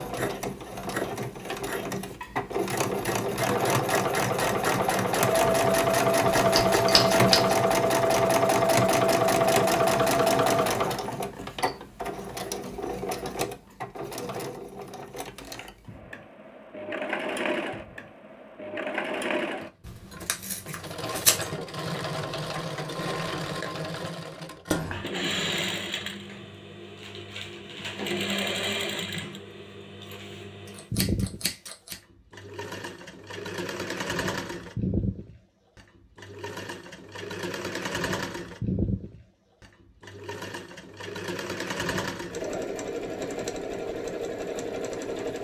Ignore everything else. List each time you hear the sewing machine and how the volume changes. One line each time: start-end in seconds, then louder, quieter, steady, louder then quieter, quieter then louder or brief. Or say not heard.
0.0-45.3 quieter.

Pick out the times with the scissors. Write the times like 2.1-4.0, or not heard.
6.5-7.6, 19.9-21.5, 30.8-31.9.